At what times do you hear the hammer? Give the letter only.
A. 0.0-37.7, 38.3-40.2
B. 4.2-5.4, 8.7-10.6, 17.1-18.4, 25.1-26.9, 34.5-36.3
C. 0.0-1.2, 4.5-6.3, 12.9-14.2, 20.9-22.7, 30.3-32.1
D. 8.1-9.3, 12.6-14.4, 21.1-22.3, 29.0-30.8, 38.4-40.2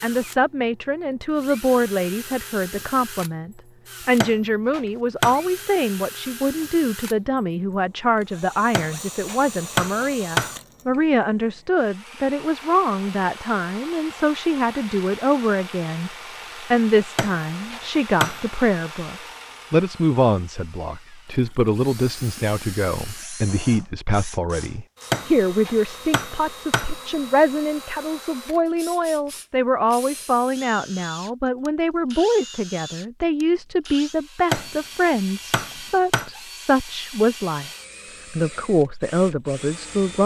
B.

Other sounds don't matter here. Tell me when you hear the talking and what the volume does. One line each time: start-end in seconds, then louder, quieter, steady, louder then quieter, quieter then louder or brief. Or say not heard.
0.0-37.7 steady
38.3-40.2 brief.